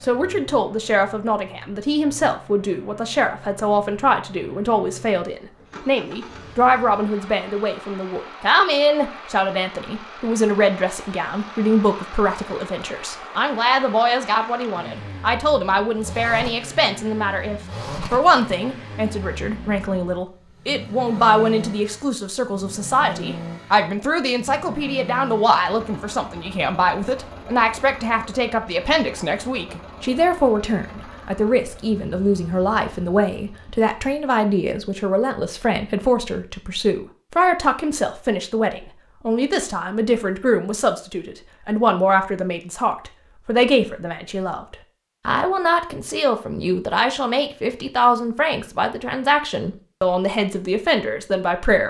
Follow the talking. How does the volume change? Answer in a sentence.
The loudness of the talking stays about the same.